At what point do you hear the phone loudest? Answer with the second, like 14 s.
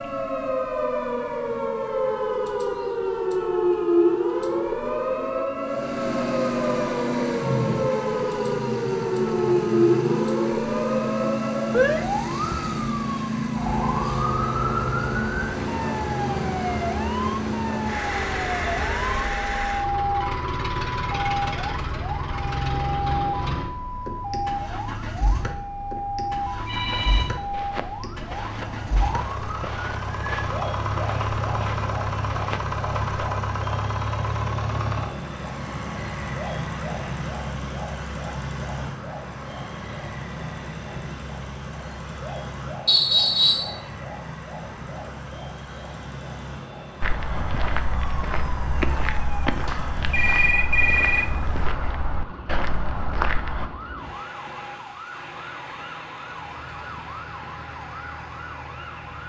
51 s.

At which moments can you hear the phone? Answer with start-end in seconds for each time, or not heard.
26.6-27.3, 49.6-51.2.